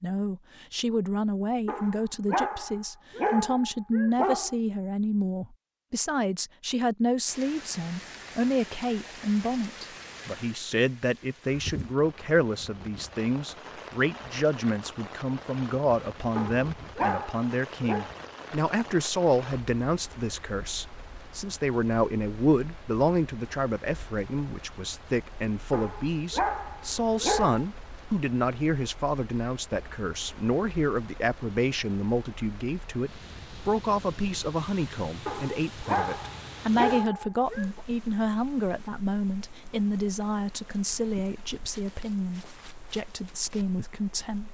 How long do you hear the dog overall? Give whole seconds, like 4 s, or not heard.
9 s.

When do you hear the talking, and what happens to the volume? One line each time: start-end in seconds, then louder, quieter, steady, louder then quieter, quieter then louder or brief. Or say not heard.
0.0-44.4 steady.